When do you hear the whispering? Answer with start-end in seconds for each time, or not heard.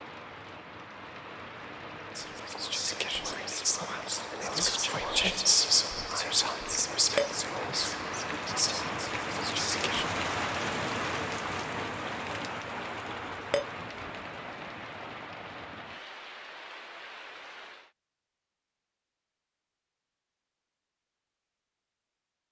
2.1-10.1.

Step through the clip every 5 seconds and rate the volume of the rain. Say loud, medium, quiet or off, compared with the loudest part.
medium, loud, loud, medium, off.